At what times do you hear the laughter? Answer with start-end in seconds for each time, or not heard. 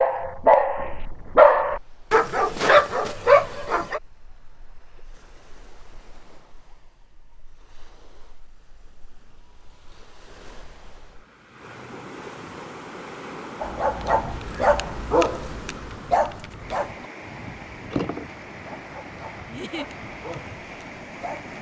19.4-19.9.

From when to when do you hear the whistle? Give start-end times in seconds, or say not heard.
not heard.